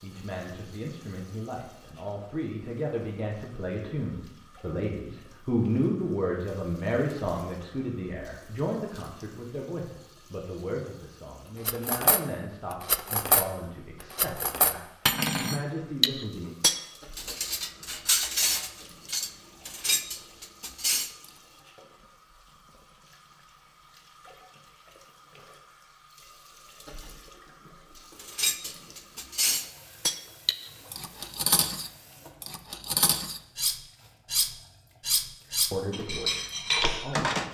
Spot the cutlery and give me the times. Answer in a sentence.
The cutlery can be heard from 11.7 to 12.2 s, from 12.8 to 13.4 s, from 14.1 to 21.1 s and from 28.2 to 37.4 s.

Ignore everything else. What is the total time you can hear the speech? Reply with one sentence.
You can hear the speech for 18 seconds altogether.